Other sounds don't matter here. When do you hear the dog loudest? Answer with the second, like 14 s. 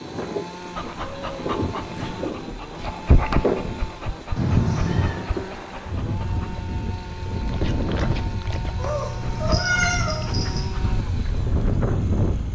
3 s.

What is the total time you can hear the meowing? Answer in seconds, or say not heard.
4 s.